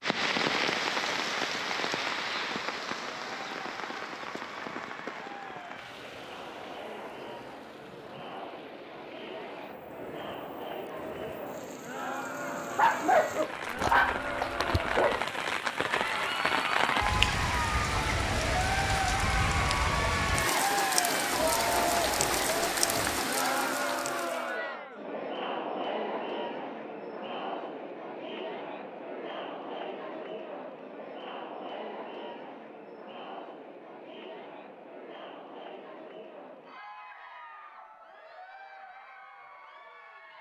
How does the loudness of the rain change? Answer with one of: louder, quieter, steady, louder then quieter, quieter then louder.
quieter then louder.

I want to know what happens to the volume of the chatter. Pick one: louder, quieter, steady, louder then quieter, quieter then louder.
louder then quieter.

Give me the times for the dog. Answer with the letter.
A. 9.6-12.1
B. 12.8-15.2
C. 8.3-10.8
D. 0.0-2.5
B.